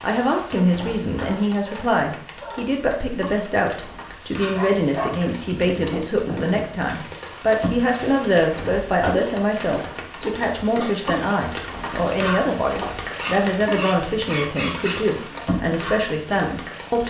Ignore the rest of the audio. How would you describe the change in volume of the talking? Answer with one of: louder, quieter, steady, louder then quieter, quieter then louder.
steady.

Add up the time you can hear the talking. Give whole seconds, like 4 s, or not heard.
17 s.